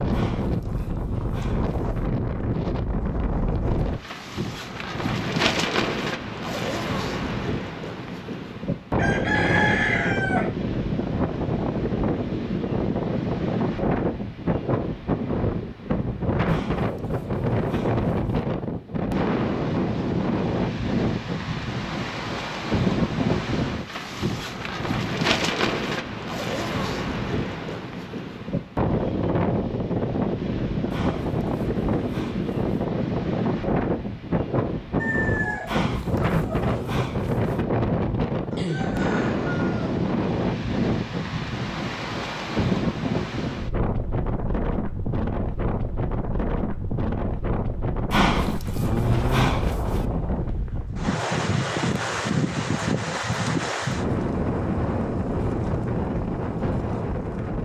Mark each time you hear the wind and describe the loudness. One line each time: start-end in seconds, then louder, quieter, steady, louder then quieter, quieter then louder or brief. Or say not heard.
0.0-57.5 steady.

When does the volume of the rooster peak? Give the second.
10 s.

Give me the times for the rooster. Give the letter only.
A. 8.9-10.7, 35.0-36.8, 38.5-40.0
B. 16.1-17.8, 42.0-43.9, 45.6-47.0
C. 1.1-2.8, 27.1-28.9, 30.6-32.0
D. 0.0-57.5
A.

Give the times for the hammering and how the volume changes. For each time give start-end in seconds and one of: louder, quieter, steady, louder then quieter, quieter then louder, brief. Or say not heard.
not heard.